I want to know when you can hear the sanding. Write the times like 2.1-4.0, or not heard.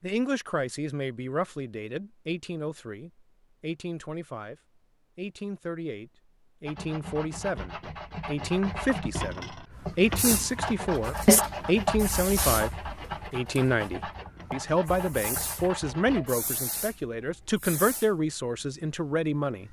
6.7-16.4.